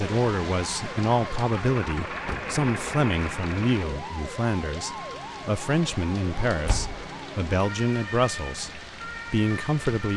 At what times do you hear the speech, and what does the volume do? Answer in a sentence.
You can hear the speech from 0.0 to 10.1 s, at a steady volume.